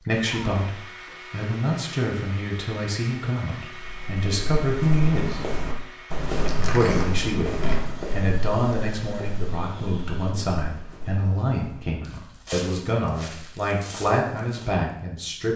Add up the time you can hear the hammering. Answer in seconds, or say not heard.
not heard.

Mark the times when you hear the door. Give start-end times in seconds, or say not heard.
6.3-7.8.